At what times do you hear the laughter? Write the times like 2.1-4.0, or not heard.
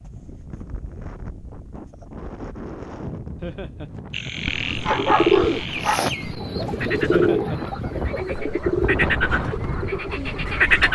3.4-3.9, 7.1-7.6.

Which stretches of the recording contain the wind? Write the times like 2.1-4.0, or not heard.
0.0-10.8.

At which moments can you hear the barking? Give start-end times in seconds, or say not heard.
4.5-6.0.